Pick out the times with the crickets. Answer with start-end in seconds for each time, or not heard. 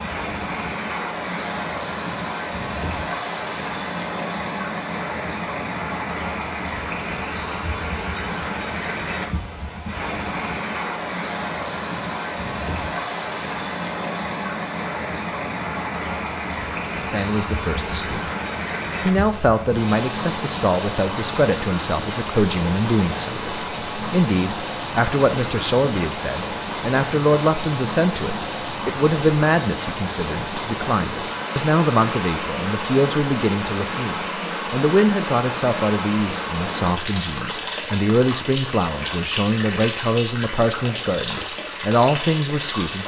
not heard.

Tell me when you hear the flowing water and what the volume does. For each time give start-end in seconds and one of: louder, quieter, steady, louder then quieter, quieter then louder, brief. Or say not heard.
0.0-43.0 steady.